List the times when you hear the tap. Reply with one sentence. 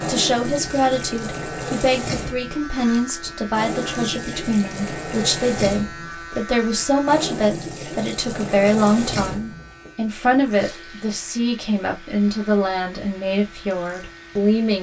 The tap can be heard from 0.0 to 14.7 s.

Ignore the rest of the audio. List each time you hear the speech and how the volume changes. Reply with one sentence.
You can hear the speech from 0.1 to 14.7 s, at a steady volume.